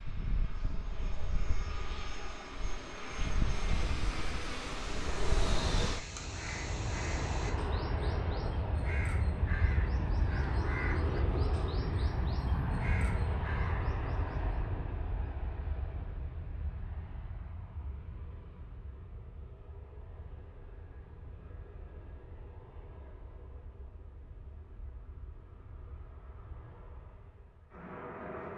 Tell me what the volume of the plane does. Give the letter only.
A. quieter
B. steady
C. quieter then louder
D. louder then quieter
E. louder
A.